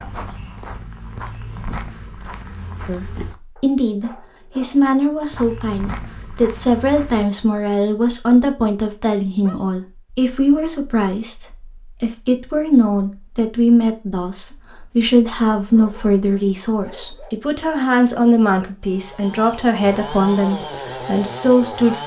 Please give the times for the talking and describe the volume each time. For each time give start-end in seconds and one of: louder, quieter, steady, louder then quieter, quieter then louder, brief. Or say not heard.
2.9-22.0 steady.